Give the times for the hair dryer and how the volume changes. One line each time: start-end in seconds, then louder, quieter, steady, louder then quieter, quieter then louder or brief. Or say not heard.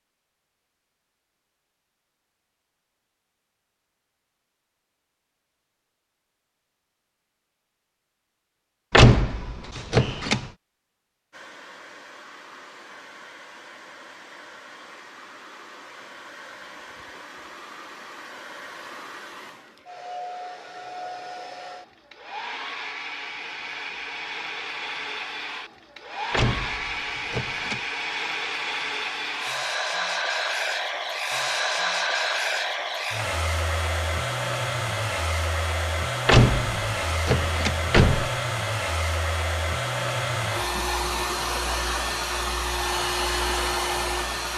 11.3-44.5 louder.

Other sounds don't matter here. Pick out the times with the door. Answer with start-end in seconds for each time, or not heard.
8.9-10.4, 26.3-27.8, 36.2-38.3.